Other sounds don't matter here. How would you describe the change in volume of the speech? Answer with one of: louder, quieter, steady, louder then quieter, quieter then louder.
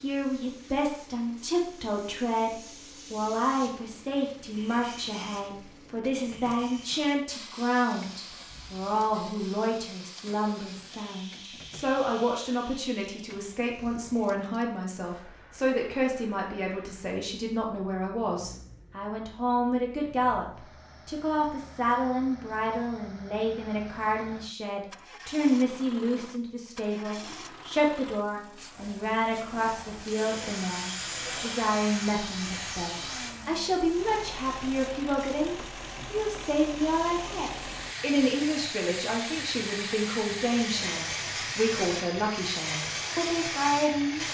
steady.